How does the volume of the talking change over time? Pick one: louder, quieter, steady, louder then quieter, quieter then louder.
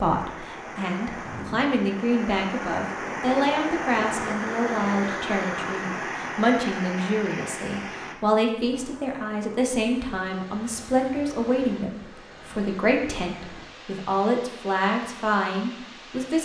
steady.